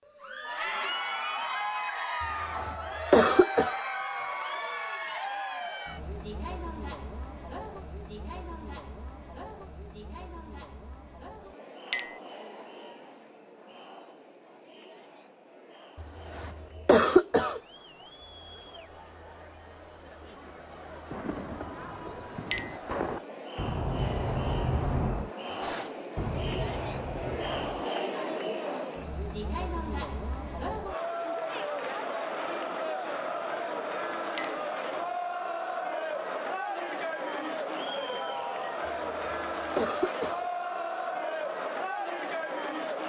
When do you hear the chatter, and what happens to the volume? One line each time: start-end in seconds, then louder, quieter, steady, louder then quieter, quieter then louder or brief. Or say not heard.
0.1-43.0 quieter then louder.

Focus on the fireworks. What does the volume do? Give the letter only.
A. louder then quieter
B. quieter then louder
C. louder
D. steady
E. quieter
A.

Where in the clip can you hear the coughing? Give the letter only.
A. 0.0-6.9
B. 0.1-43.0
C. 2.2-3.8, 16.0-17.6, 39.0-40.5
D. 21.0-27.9
C.